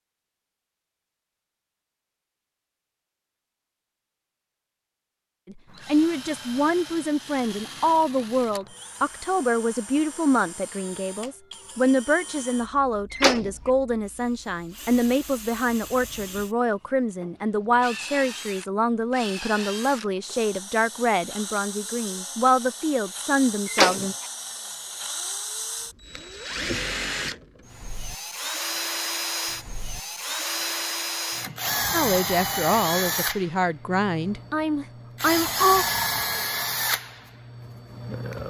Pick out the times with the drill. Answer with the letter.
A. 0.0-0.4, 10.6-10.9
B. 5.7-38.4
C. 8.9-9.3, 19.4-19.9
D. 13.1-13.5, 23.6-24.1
B.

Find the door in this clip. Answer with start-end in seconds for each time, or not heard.
13.1-13.5, 23.6-24.1.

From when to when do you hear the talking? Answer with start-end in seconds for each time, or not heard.
5.5-24.1, 31.9-35.9.